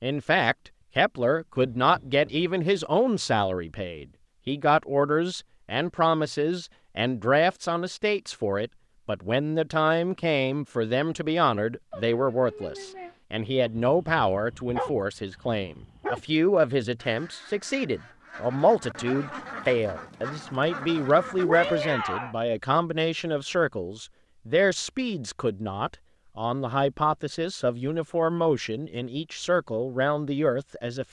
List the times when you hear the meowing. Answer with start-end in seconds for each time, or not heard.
1.6-2.5, 11.9-13.2, 21.4-22.4.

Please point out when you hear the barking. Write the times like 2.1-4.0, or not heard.
13.7-16.2.